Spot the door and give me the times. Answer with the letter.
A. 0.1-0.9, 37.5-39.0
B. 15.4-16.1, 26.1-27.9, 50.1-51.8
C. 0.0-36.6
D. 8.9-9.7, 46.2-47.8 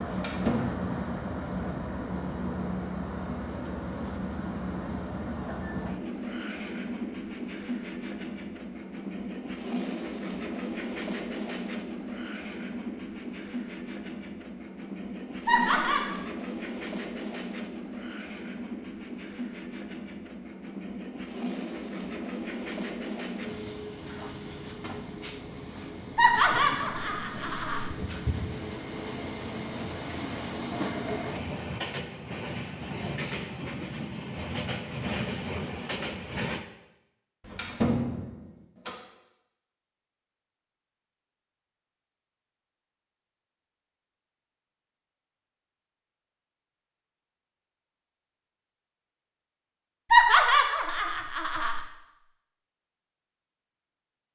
A.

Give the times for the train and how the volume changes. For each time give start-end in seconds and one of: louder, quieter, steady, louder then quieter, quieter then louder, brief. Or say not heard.
0.0-36.6 steady.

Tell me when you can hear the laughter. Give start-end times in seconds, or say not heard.
15.4-16.1, 26.1-27.9, 50.1-51.8.